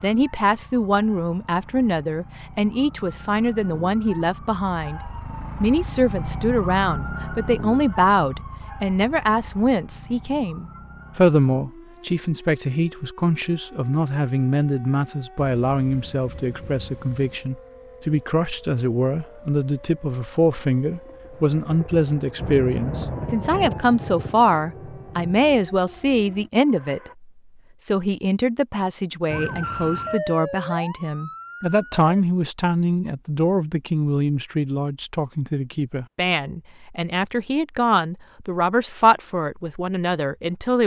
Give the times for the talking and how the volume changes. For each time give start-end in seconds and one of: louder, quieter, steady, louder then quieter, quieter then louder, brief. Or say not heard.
0.0-5.0 steady
5.6-40.8 steady.